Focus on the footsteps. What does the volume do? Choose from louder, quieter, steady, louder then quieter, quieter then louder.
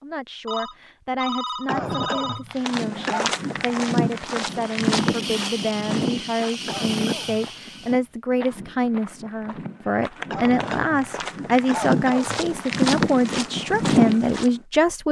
quieter then louder.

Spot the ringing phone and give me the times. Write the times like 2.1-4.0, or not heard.
0.5-2.5.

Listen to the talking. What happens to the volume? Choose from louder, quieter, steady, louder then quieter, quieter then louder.
louder.